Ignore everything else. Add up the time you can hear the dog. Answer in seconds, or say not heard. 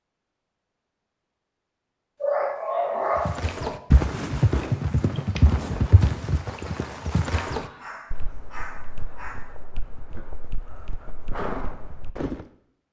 4 s.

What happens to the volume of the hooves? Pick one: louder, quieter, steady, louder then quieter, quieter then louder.
quieter then louder.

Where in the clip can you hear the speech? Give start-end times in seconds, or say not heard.
not heard.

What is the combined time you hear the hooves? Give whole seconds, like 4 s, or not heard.
9 s.